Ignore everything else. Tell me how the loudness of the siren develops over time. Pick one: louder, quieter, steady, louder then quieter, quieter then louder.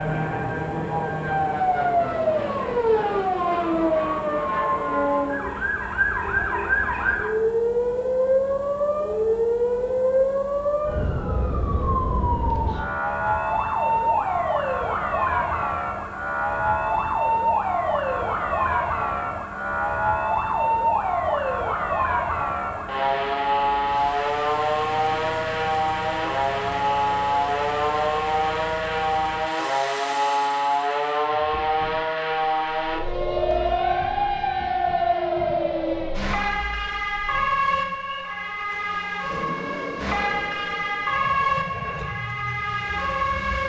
steady.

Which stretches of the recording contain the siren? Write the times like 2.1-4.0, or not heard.
0.0-43.6.